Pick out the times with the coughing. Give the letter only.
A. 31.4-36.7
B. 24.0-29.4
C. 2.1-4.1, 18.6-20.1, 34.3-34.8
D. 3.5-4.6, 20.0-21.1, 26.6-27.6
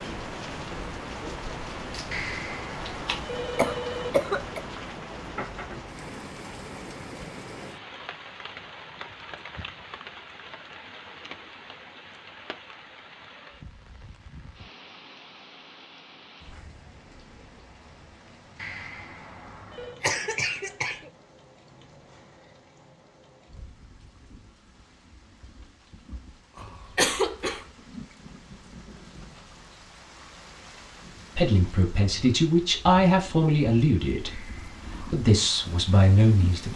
D.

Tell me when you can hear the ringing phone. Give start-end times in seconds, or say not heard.
2.1-4.1, 18.6-20.1, 34.3-34.8.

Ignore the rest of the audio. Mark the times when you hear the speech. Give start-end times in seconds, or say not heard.
31.4-36.7.